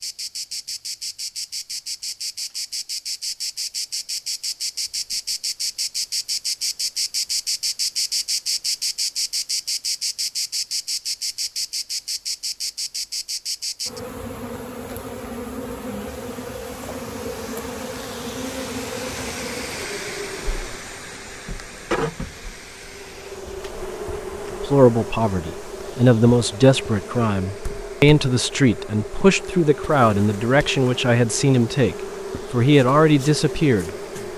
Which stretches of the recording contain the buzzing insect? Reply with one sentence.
The buzzing insect can be heard from 0.0 to 34.3 s.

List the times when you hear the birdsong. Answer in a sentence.
The birdsong can't be heard in this clip.